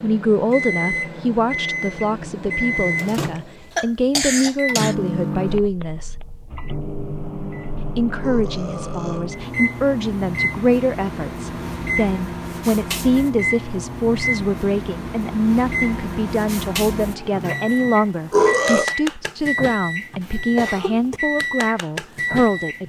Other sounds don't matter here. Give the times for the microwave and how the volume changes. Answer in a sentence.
You can hear the microwave from 0.0 to 22.8 s, at a steady volume.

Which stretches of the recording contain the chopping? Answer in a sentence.
The chopping can't be heard in this clip.